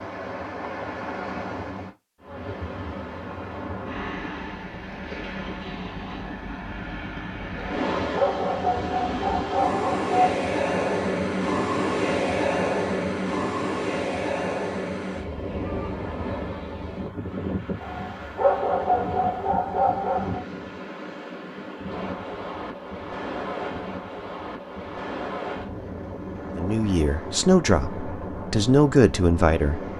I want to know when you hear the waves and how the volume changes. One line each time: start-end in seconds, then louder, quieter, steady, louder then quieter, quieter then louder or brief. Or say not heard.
0.0-29.9 louder then quieter.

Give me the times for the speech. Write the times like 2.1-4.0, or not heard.
26.6-29.8.